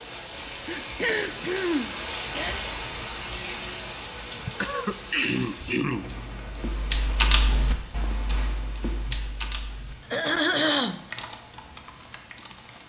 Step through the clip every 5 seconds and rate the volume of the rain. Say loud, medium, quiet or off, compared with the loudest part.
loud, medium, quiet.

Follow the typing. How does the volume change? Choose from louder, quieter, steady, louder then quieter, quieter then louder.
quieter.